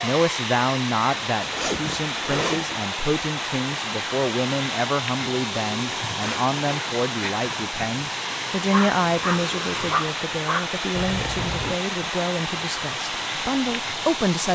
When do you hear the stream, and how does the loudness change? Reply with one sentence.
The stream can be heard from 0.0 to 14.5 s, at a steady volume.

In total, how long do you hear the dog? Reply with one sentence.
The dog can be heard for 2 seconds in total.